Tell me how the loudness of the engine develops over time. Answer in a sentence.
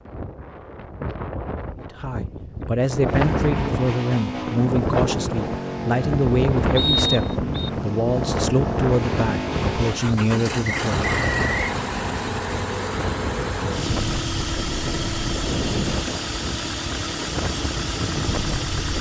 The volume of the engine stays about the same.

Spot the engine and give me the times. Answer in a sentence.
You can hear the engine from 3.0 to 18.9 s.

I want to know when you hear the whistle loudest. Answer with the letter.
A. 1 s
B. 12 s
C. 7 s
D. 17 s
C.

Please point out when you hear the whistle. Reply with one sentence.
You can hear the whistle from 6.8 to 7.7 s and from 10.7 to 11.8 s.